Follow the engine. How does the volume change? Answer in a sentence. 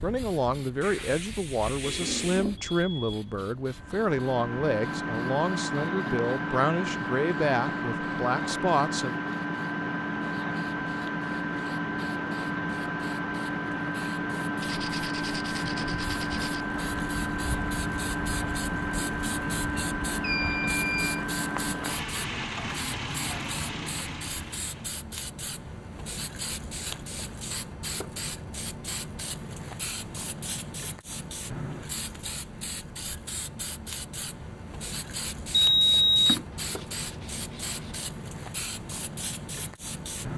The loudness of the engine stays about the same.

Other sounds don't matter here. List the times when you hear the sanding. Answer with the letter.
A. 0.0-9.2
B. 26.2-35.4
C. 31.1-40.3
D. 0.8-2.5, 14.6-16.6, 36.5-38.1
D.